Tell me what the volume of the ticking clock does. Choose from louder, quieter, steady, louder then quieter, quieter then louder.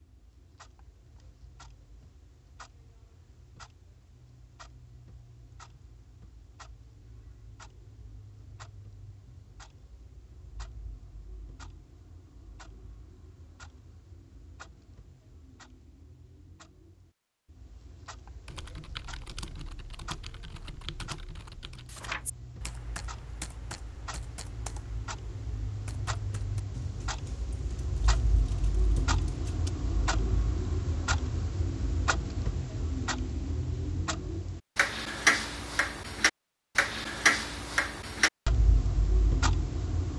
louder.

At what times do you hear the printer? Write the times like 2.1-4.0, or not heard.
not heard.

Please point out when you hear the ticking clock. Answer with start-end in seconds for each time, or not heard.
0.0-40.1.